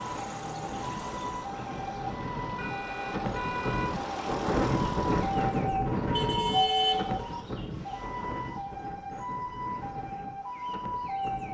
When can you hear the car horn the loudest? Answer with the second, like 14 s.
7 s.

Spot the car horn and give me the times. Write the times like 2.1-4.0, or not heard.
2.5-4.0, 6.1-7.8.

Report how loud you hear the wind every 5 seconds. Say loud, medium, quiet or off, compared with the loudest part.
loud, loud, medium.